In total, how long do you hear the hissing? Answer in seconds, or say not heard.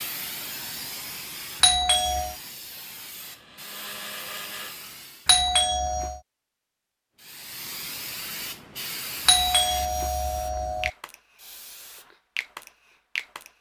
12 s.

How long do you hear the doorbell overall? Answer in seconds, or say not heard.
3 s.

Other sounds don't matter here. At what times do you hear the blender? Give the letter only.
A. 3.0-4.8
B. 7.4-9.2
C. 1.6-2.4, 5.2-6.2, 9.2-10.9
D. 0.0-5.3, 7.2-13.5
A.